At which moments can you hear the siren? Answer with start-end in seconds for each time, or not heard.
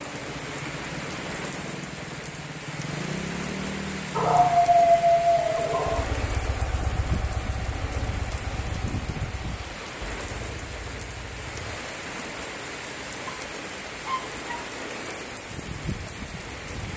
not heard.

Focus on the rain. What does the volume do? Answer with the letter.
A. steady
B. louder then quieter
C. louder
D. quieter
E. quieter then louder
A.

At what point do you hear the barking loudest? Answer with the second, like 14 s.
5 s.